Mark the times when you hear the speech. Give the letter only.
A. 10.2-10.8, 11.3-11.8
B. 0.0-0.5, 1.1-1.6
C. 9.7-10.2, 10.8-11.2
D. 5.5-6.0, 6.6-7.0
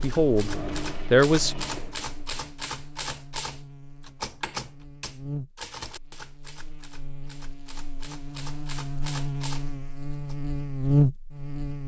B.